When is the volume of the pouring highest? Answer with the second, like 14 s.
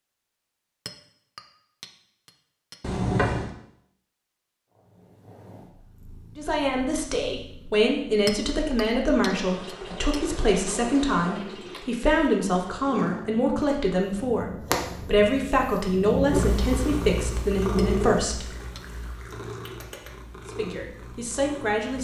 3 s.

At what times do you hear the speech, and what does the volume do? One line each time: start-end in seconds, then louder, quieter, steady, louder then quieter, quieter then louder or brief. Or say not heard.
6.3-18.4 steady
20.4-21.9 brief.